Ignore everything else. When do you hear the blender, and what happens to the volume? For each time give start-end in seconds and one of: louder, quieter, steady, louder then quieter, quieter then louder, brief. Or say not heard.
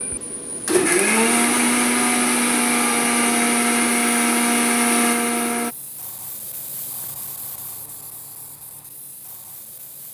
0.0-5.8 steady.